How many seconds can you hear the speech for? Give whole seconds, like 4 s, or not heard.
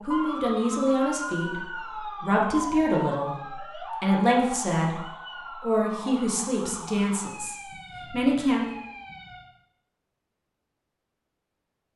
8 s.